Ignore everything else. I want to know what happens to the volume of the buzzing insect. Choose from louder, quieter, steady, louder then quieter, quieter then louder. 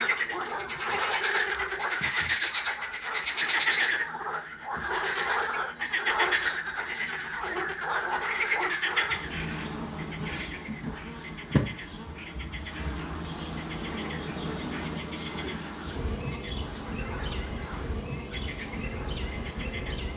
louder.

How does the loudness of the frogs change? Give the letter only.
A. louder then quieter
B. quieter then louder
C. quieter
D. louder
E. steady
C.